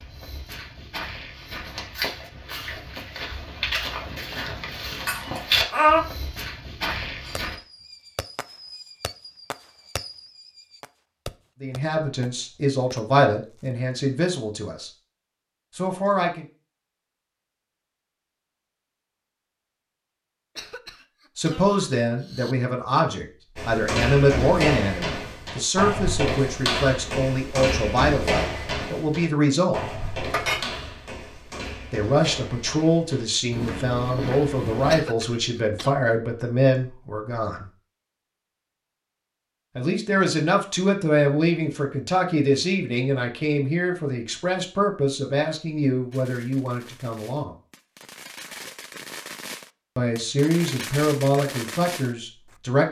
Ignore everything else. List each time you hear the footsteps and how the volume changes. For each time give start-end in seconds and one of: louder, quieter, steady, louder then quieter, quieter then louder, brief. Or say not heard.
0.0-7.5 louder then quieter
23.6-35.0 quieter.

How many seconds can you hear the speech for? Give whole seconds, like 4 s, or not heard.
29 s.